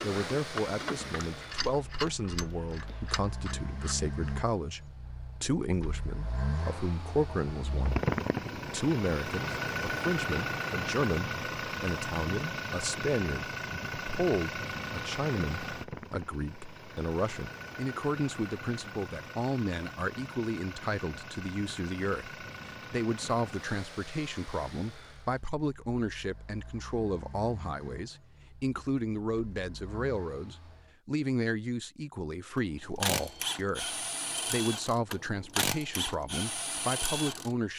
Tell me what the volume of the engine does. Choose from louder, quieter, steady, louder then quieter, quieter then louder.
louder then quieter.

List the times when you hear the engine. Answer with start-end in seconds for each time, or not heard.
0.0-30.9.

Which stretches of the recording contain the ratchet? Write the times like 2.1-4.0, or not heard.
0.0-4.1, 32.9-37.5.